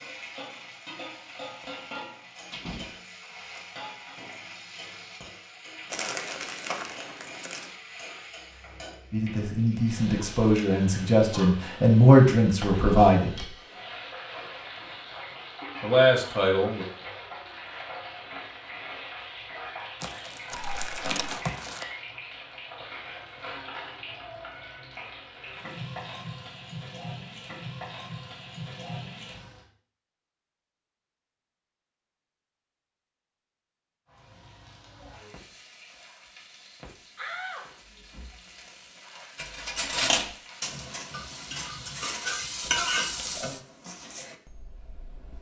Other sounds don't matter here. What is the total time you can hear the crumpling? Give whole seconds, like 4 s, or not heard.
5 s.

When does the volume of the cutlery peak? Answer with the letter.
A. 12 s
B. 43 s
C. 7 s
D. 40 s
D.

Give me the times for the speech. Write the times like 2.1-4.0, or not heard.
9.1-13.4, 15.8-16.9.